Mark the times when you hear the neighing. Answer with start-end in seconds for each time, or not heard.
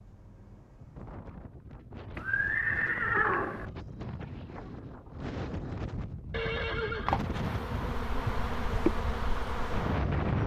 2.1-3.6, 6.3-7.4.